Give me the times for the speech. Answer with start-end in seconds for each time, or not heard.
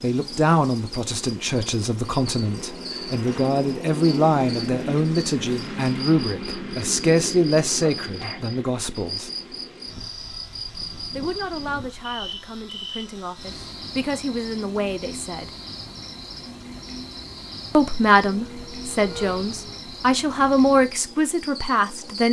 0.0-9.3, 11.2-15.5, 17.7-22.2.